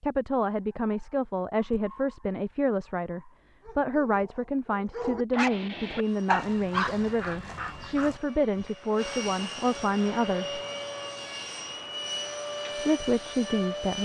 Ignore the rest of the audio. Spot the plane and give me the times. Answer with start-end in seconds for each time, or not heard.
5.8-14.0.